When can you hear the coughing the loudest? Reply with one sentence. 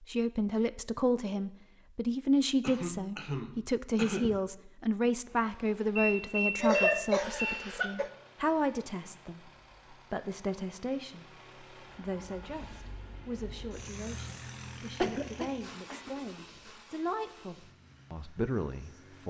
The loudest moment of the coughing is at 7 seconds.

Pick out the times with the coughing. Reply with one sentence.
The coughing can be heard from 2.6 to 4.4 s, from 6.6 to 8.1 s and from 15.0 to 16.1 s.